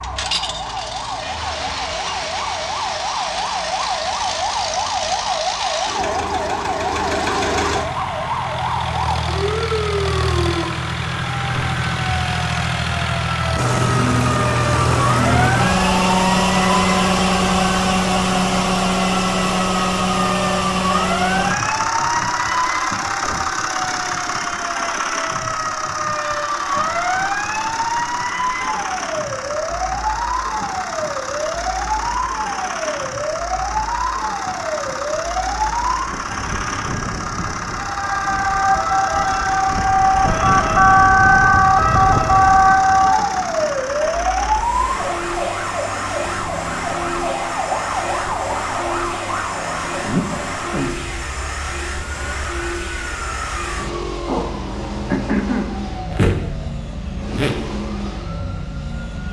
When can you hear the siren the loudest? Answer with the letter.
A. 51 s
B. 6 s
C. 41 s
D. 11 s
C.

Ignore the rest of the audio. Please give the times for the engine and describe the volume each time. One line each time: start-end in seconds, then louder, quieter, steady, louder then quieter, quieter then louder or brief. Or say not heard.
0.0-59.2 louder then quieter.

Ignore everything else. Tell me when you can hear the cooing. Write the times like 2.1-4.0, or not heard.
not heard.